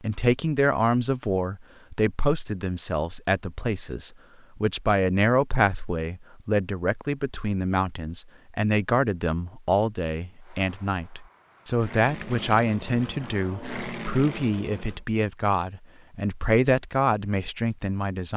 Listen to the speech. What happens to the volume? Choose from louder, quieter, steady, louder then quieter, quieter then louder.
steady.